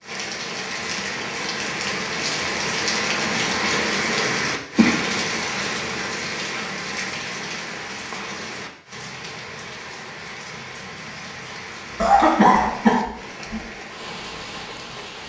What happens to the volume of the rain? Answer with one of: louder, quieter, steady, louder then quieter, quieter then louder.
quieter.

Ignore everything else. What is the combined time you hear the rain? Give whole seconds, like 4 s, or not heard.
15 s.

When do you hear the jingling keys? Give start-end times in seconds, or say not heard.
not heard.